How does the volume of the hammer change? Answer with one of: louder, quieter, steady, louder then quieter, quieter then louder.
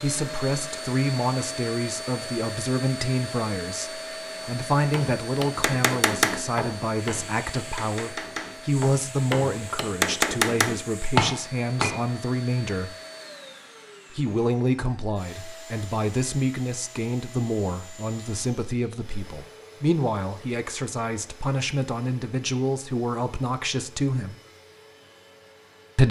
quieter then louder.